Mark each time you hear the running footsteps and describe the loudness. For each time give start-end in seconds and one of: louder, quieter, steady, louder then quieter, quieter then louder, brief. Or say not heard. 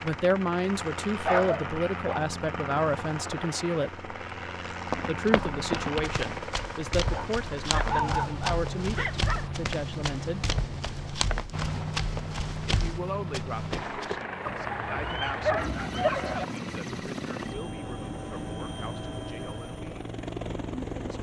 4.9-14.2 steady.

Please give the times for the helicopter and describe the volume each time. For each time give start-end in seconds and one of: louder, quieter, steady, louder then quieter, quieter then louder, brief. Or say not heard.
0.0-21.1 steady.